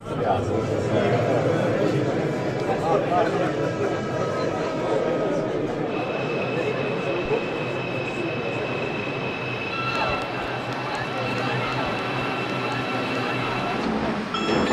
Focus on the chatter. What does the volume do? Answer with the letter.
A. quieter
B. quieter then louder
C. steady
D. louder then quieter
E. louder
A.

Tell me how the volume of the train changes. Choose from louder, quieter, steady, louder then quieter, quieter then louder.
louder.